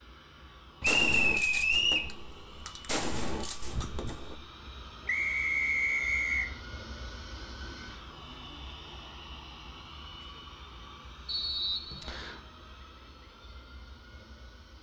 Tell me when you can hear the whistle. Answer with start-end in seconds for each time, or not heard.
0.8-2.1, 5.0-6.5, 11.2-12.4.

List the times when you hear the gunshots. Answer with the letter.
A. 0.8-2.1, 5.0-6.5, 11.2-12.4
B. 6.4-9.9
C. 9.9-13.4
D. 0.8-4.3
D.